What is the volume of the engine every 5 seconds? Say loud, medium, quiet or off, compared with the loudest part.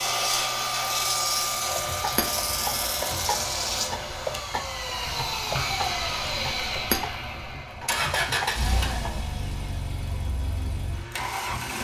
loud, loud, medium.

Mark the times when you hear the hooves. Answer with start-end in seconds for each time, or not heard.
1.7-9.1.